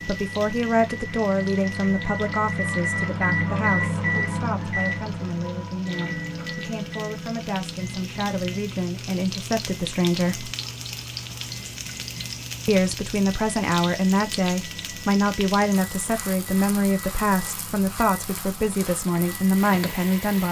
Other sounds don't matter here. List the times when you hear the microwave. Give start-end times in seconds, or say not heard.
0.0-20.4.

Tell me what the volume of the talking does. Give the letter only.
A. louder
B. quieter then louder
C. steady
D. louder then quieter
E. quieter
B.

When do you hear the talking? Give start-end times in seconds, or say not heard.
0.1-10.5, 12.7-20.4.